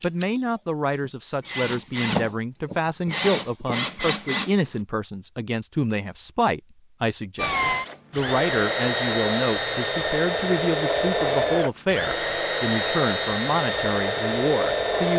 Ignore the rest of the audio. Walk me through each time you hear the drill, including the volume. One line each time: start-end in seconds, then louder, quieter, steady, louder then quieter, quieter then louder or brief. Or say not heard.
0.0-4.8 louder
7.3-15.1 steady.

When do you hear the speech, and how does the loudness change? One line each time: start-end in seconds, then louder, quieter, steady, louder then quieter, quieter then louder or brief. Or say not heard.
0.0-15.1 steady.